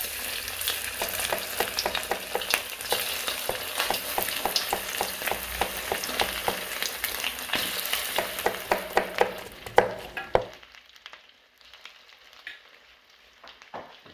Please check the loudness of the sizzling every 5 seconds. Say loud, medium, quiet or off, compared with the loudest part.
loud, loud, quiet.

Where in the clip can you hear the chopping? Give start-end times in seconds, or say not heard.
0.9-10.4.